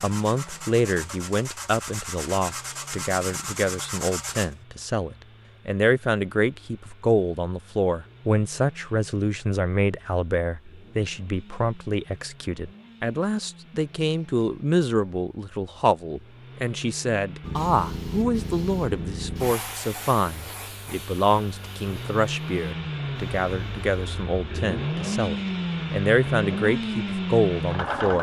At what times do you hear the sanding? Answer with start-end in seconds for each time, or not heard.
0.0-4.5.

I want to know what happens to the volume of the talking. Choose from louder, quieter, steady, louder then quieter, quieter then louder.
steady.